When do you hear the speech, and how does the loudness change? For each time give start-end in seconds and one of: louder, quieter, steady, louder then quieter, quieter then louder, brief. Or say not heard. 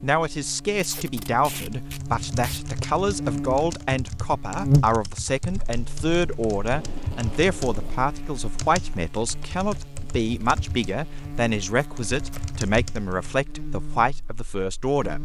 0.0-15.2 steady.